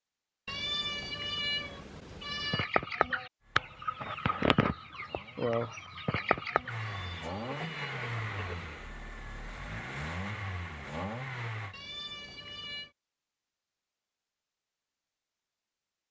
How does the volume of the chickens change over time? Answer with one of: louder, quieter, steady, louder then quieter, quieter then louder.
quieter.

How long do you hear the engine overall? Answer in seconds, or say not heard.
8 s.